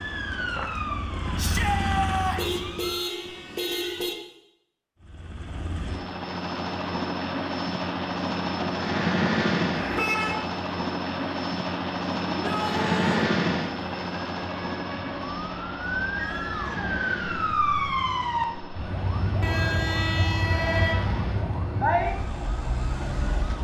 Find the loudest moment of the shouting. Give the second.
2 s.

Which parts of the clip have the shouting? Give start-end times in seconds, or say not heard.
1.4-2.6, 12.2-13.3, 16.1-17.1.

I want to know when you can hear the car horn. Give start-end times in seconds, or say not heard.
2.4-4.2, 9.7-10.3, 19.4-21.2.